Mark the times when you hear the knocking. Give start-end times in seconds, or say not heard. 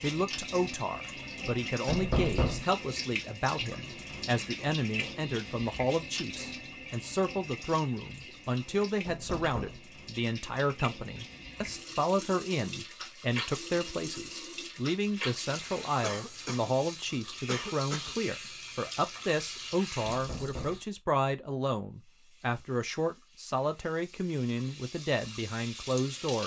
1.9-2.6, 9.1-9.8, 20.1-20.8.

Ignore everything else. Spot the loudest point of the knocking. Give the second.
2 s.